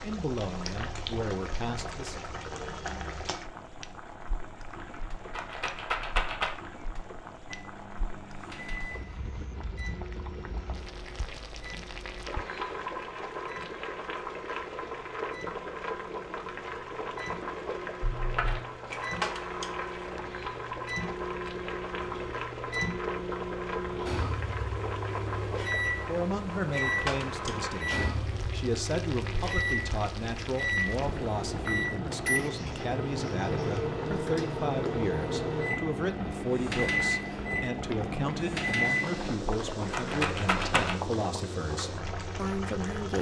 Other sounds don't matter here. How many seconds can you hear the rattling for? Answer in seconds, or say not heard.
4 s.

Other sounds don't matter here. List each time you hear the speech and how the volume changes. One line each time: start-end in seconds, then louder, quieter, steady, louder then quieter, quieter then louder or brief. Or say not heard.
0.0-2.2 brief
26.1-43.1 steady.